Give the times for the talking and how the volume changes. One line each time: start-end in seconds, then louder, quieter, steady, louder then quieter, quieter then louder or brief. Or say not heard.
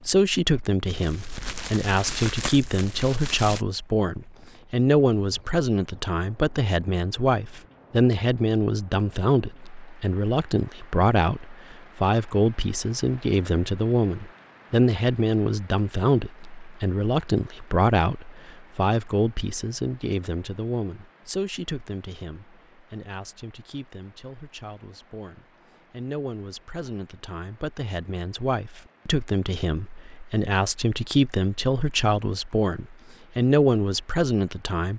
0.1-34.9 quieter then louder.